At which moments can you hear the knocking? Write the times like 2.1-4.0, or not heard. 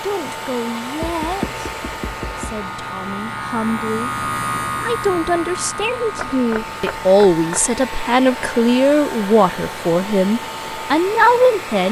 1.0-2.6, 6.2-7.8.